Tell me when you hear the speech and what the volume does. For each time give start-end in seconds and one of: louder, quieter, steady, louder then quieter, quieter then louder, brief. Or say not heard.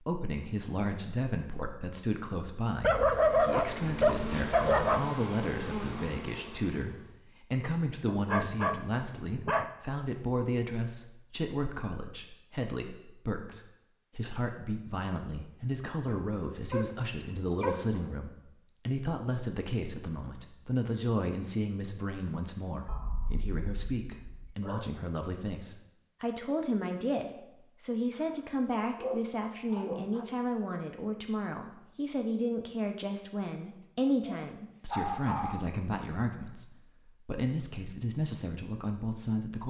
0.0-39.6 steady.